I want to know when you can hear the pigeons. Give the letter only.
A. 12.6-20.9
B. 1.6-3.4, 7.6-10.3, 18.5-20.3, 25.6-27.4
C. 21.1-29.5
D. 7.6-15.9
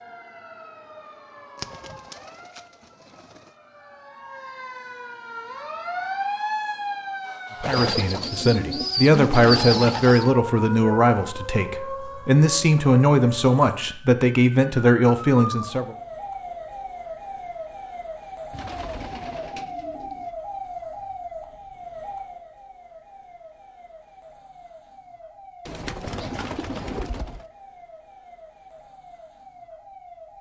B.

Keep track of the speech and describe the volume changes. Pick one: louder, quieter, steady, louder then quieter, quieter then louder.
steady.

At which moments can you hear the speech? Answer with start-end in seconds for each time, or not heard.
7.6-15.9.